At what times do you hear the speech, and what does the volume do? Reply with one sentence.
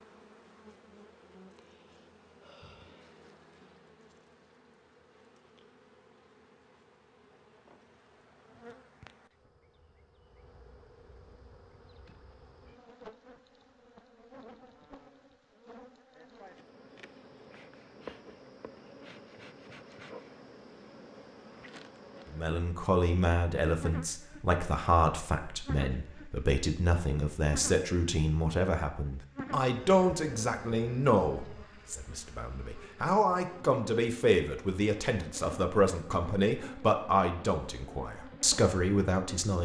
The speech can be heard from 22.3 to 39.5 s, at a steady volume.